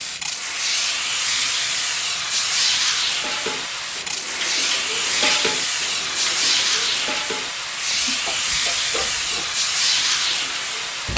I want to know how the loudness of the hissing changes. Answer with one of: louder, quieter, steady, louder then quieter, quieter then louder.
steady.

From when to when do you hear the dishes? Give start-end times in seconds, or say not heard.
2.9-11.1.